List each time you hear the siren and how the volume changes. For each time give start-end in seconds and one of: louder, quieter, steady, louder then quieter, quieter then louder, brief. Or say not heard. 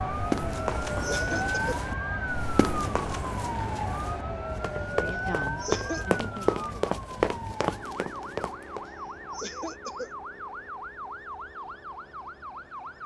0.0-13.0 quieter.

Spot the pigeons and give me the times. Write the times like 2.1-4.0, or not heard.
not heard.